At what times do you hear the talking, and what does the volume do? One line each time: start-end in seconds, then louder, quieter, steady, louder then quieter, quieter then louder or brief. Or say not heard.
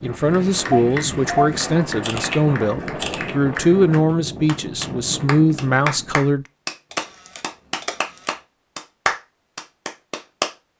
0.0-6.5 steady.